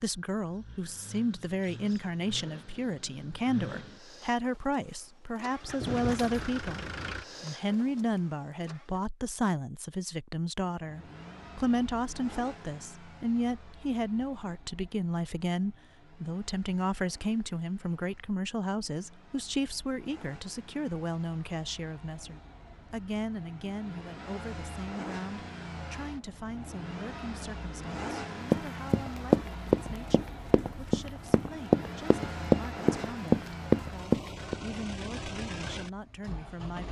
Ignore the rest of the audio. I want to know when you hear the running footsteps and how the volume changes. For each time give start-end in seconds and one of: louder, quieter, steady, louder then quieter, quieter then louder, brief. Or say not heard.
28.5-34.5 quieter then louder.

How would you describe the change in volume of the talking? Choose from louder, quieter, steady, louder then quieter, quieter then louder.
quieter.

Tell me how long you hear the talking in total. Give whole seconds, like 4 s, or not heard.
37 s.